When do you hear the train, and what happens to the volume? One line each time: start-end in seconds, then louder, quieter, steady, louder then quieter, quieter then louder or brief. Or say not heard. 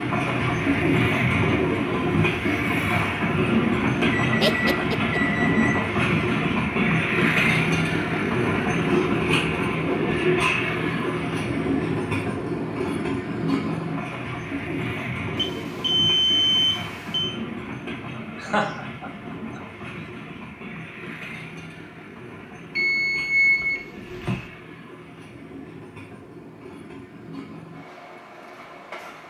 0.0-29.2 quieter.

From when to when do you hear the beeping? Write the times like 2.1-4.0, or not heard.
4.0-5.8, 15.3-17.3, 22.8-24.4.